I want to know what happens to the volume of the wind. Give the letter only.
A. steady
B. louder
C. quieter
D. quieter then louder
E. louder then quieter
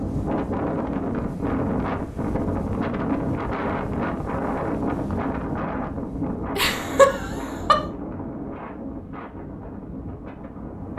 C.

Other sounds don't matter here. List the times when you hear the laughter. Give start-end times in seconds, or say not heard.
6.5-7.8.